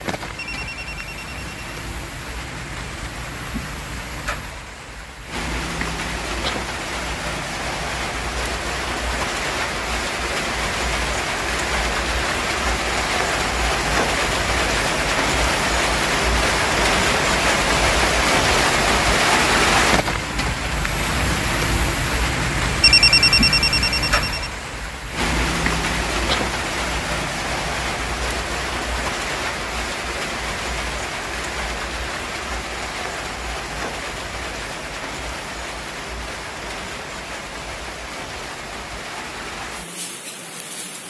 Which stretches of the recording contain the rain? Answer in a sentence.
The rain can be heard from 0.0 to 41.0 s.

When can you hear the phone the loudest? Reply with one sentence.
The loudest moment of the phone is at 23 seconds.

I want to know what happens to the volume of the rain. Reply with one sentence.
The loudness of the rain goes up, then down.